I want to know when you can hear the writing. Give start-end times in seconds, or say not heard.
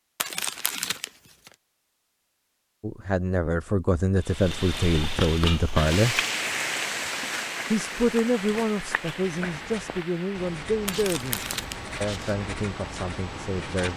9.2-13.9.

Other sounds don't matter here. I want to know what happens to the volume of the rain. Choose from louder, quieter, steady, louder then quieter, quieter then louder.
quieter.